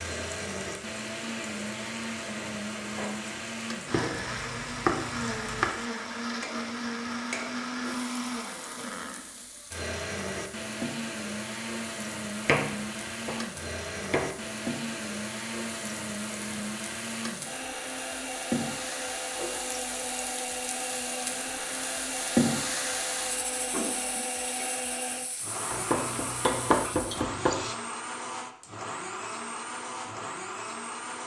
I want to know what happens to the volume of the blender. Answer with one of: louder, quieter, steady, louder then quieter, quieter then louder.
steady.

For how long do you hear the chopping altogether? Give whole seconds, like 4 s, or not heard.
6 s.